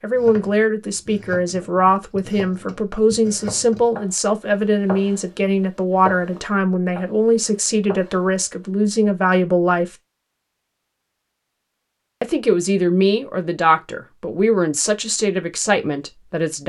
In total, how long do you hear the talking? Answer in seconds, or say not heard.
14 s.